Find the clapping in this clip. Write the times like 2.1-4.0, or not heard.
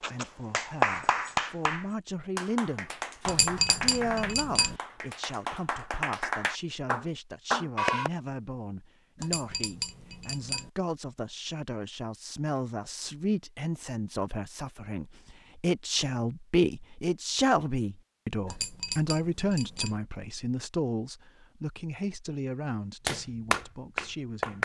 0.0-8.1, 23.1-24.6.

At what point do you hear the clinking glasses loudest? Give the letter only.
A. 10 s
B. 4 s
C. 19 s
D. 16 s
B.